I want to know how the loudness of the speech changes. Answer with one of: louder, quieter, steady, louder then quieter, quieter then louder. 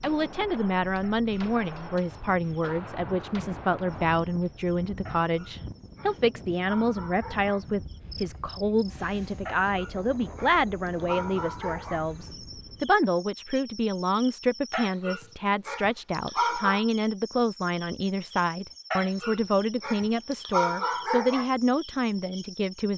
steady.